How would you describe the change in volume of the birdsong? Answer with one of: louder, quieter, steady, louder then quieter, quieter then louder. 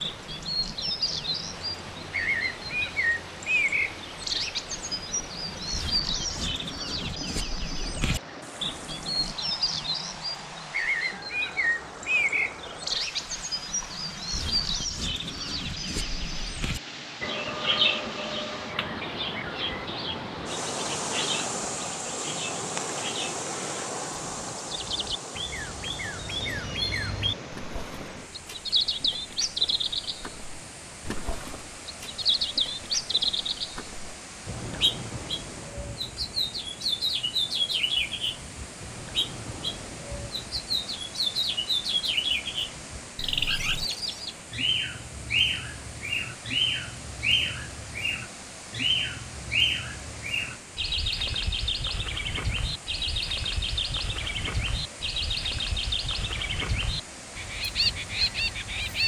steady.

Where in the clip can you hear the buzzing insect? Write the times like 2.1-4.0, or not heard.
not heard.